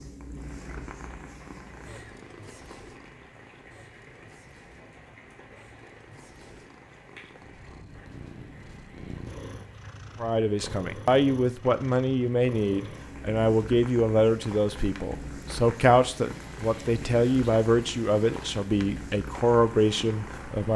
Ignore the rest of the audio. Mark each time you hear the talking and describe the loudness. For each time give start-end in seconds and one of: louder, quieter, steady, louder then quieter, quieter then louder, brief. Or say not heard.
10.2-20.7 steady.